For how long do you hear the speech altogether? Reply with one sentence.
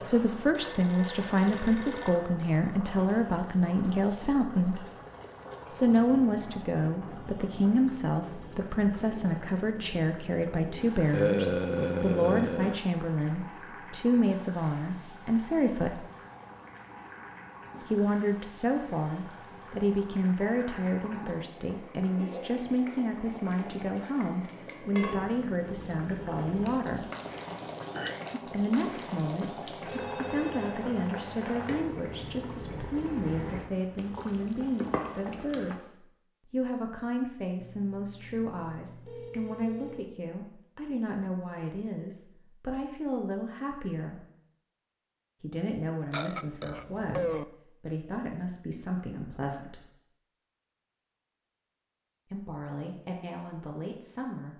You can hear the speech for 47 seconds altogether.